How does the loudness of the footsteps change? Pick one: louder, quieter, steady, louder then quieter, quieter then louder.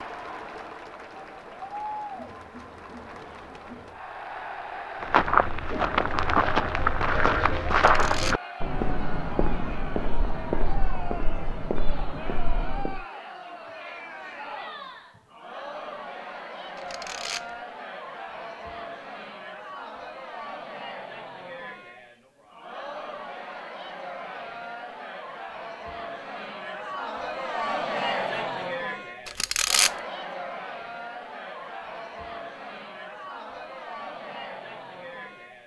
quieter.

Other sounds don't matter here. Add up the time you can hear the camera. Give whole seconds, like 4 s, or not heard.
2 s.